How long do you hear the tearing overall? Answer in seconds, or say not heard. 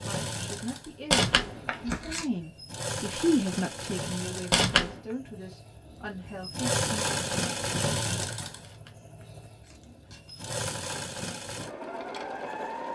4 s.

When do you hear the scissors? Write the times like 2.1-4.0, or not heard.
not heard.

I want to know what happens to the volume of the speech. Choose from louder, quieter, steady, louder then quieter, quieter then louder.
louder then quieter.